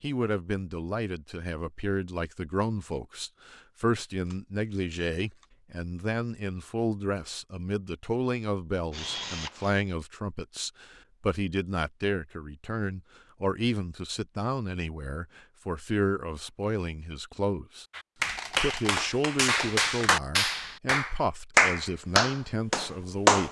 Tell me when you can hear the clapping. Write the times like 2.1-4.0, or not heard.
17.9-23.4.